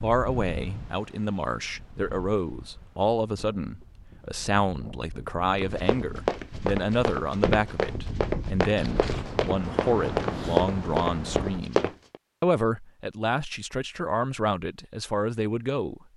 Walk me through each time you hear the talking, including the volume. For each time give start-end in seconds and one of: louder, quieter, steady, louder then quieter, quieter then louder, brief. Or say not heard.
0.0-16.0 steady.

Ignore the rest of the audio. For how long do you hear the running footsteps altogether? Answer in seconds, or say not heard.
7 s.